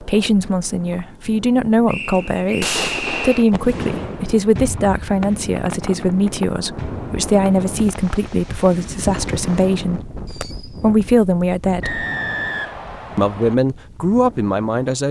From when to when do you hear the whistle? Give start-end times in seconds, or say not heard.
1.9-3.5, 11.8-13.6.